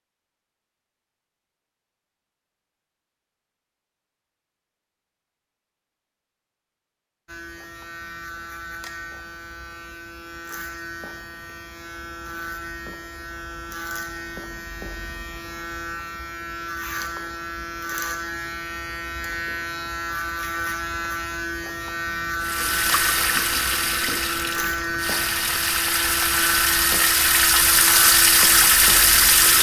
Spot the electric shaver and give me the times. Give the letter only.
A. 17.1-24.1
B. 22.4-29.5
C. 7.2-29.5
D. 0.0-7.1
C.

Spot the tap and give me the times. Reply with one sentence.
You can hear the tap from 22.4 to 29.5 s.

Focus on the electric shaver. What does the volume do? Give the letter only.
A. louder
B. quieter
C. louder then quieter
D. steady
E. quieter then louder
A.